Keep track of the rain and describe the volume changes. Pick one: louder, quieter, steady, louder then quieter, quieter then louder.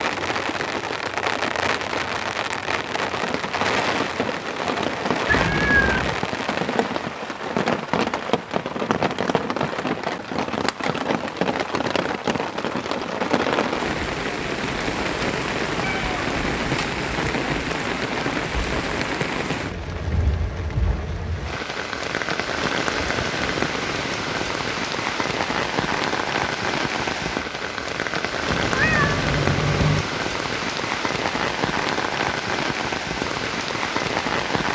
steady.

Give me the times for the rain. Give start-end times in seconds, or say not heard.
0.0-34.7.